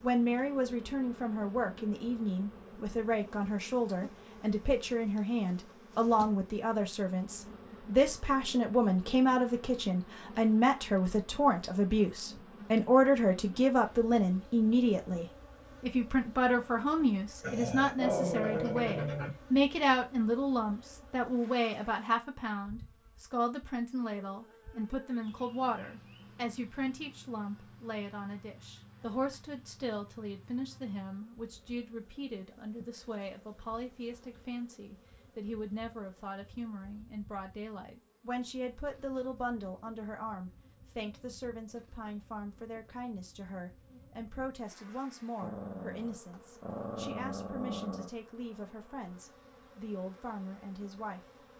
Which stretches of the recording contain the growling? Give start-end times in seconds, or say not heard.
17.4-19.3, 45.4-48.1.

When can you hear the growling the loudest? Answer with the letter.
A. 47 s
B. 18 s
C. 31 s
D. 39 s
B.